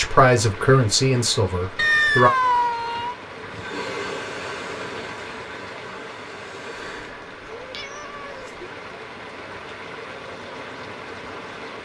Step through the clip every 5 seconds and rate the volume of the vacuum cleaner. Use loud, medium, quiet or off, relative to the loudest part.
loud, medium, off.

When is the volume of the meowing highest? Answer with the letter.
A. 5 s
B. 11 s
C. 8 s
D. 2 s
D.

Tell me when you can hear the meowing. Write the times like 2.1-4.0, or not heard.
1.8-3.1, 6.8-8.7.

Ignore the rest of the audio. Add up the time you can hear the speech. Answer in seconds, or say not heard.
2 s.